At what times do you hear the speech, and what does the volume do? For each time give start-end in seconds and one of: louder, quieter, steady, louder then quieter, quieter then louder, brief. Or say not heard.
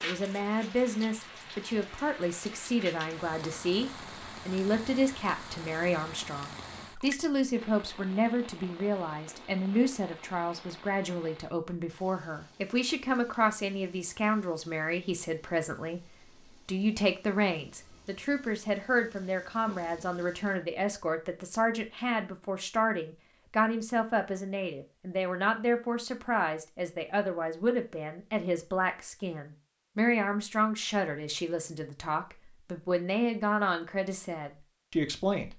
0.0-35.5 steady.